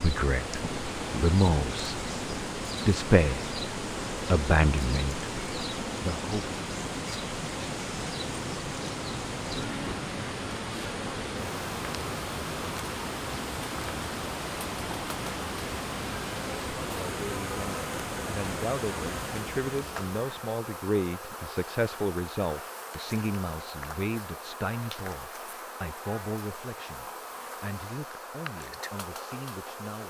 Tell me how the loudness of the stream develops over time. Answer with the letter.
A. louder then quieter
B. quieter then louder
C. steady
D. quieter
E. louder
C.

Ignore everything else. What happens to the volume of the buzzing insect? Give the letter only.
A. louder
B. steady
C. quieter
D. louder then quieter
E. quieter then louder
B.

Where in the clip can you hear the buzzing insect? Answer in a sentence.
The buzzing insect can be heard from 0.0 to 30.0 s.